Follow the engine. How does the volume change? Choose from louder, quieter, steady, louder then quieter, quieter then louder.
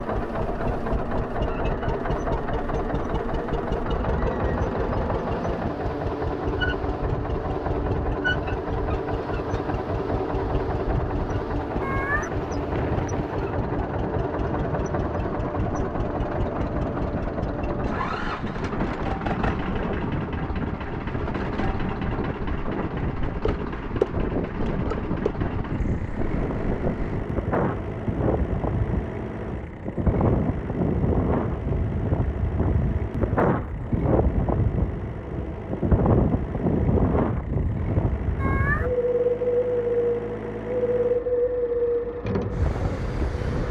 quieter.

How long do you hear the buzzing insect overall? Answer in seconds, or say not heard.
not heard.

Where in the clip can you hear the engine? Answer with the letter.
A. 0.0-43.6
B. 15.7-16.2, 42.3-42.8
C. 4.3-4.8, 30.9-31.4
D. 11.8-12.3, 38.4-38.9
A.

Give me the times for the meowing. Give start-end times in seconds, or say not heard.
11.8-12.3, 38.4-38.9.